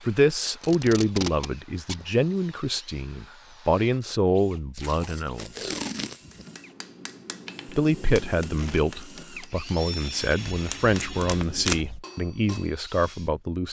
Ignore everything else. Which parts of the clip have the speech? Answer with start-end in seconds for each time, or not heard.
0.1-5.7, 7.7-13.6.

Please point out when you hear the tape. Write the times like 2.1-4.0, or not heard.
0.6-2.0, 4.8-6.5, 10.5-12.0.